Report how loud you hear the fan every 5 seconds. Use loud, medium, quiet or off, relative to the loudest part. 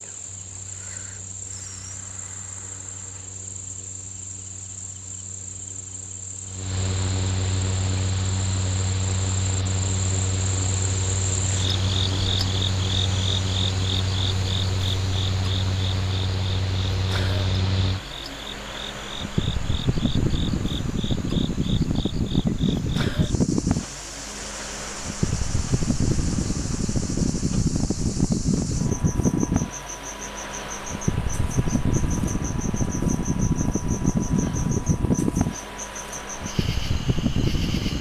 quiet, medium, medium, medium, loud, loud, loud, loud.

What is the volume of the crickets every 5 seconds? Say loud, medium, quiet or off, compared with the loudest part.
medium, medium, loud, medium, medium, medium, medium, medium.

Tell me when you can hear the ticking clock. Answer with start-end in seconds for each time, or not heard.
not heard.